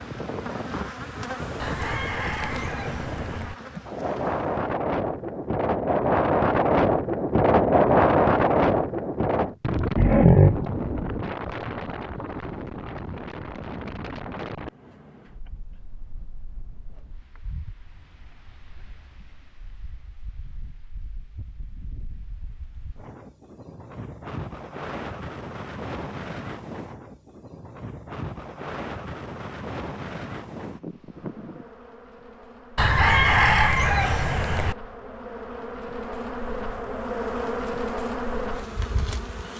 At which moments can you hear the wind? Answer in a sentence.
You can hear the wind from 0.0 to 31.7 s.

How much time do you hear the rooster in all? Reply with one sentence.
The rooster can be heard for 4 seconds in total.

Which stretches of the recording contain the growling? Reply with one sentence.
You can hear the growling from 9.9 to 10.6 s.